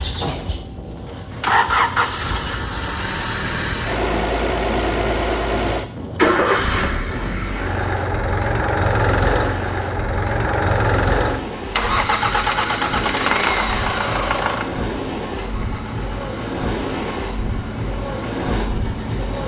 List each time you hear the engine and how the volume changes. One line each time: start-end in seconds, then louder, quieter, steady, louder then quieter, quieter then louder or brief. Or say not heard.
0.0-19.4 quieter.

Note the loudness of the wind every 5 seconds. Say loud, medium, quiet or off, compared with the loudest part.
medium, medium, loud, loud.